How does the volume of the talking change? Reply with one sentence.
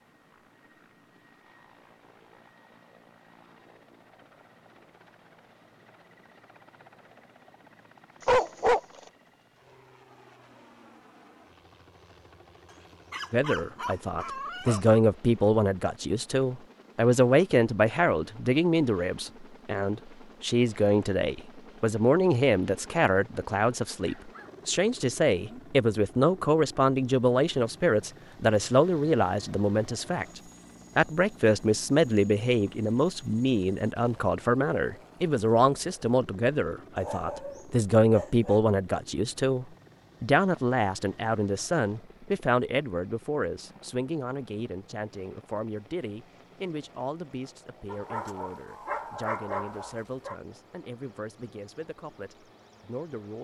The loudness of the talking goes down.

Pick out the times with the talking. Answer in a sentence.
The talking can be heard from 13.3 to 53.3 s.